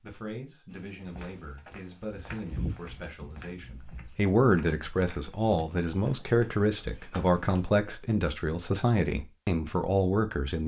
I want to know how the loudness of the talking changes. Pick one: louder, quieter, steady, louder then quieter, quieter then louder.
louder.